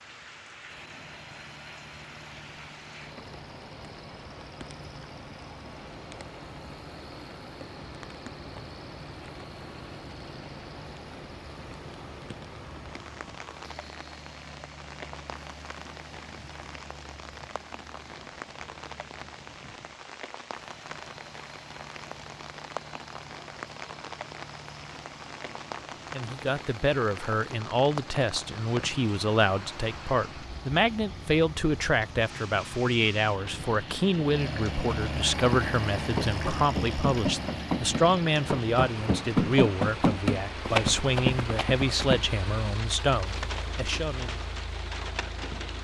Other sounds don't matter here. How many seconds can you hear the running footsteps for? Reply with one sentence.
You can hear the running footsteps for 7 seconds altogether.